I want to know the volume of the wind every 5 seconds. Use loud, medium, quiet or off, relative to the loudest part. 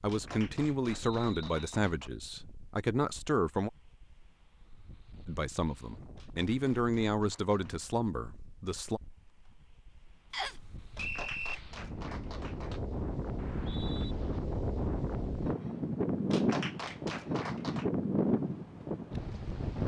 quiet, quiet, medium, loud.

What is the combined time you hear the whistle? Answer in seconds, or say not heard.
3 s.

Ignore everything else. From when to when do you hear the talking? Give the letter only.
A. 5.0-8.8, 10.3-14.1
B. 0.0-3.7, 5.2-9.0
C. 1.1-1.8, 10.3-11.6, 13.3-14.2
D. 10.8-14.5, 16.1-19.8
B.